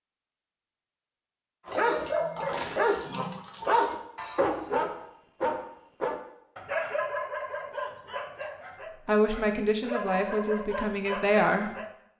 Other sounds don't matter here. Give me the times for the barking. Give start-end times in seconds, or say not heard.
1.6-11.8.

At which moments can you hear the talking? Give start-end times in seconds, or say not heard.
9.1-11.8.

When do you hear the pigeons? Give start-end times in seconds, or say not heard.
not heard.